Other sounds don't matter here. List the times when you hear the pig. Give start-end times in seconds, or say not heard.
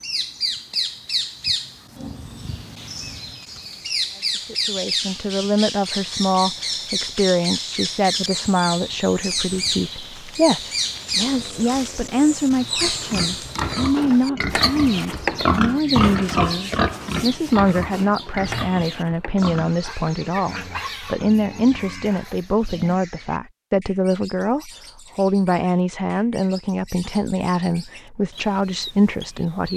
12.8-22.4.